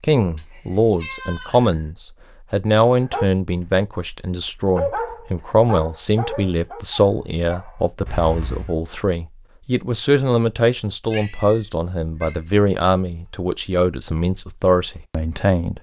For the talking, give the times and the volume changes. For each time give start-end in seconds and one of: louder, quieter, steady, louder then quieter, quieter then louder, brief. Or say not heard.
0.0-15.7 steady.